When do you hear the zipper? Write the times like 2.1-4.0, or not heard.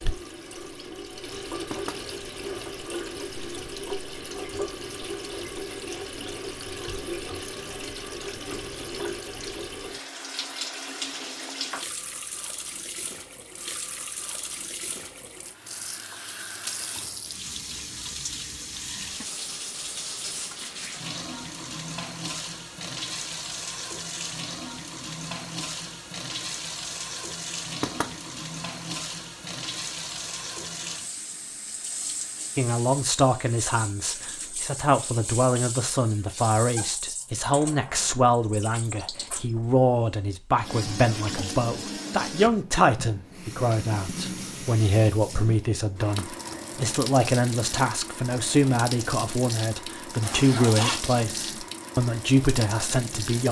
50.2-51.2.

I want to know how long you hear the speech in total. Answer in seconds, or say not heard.
21 s.